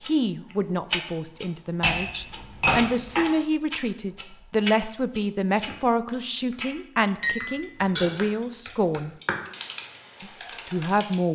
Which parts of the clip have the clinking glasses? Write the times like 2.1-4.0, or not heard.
1.8-3.2, 7.2-8.2.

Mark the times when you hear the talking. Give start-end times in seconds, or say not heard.
0.0-9.2, 10.2-11.3.